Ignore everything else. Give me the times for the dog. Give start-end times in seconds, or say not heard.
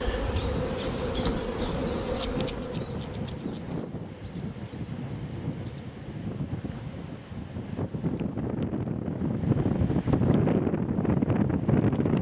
not heard.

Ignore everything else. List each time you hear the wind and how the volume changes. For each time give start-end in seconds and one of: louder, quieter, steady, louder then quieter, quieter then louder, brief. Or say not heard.
0.0-12.1 louder.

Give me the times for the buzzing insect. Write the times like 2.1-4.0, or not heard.
0.0-8.5.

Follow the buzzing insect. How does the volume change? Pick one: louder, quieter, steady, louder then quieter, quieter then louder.
quieter.